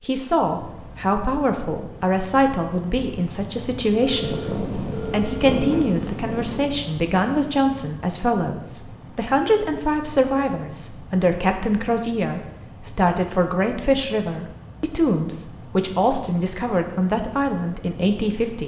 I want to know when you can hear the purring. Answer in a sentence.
You can hear the purring from 4.1 to 6.8 s.